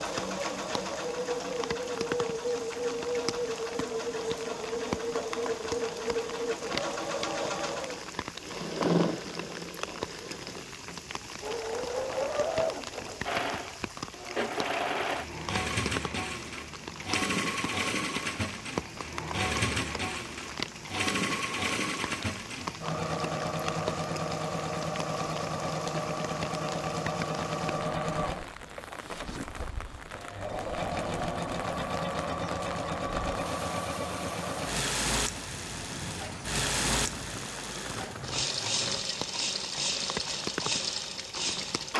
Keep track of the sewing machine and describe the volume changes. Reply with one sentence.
The loudness of the sewing machine stays about the same.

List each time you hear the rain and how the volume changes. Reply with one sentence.
The rain can be heard from 0.0 to 41.9 s, at a steady volume.